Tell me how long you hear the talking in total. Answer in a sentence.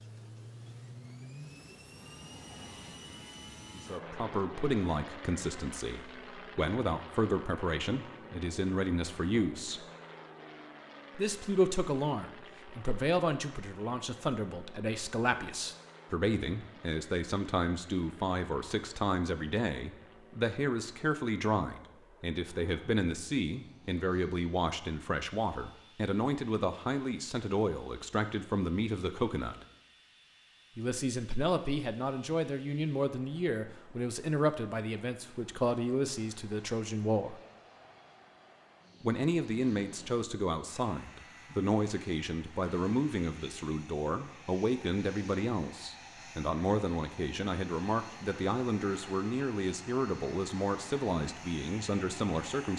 You can hear the talking for 45 seconds altogether.